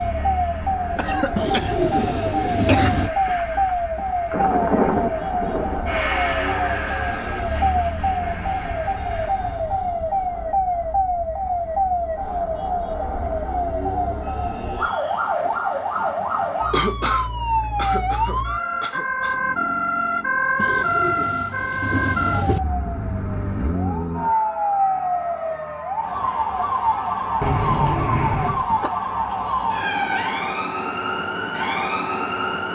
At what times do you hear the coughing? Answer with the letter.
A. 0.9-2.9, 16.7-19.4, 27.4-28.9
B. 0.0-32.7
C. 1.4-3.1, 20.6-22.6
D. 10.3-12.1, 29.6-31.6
A.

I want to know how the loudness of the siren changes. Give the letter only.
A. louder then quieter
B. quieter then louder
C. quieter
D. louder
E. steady
E.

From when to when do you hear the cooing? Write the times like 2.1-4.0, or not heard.
1.4-3.1, 20.6-22.6.